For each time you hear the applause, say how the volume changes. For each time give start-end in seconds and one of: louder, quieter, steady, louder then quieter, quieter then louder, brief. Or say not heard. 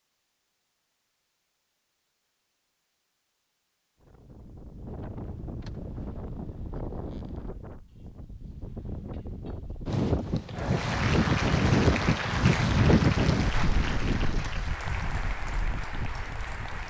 10.5-16.8 quieter.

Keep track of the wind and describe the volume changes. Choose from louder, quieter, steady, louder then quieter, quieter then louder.
louder then quieter.